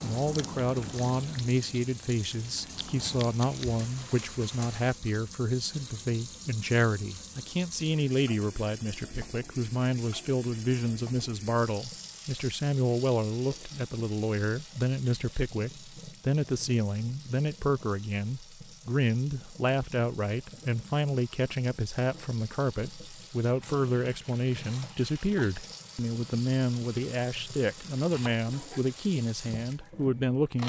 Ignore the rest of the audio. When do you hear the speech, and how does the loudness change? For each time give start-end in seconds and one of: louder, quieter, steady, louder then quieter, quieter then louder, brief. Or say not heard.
0.0-30.6 steady.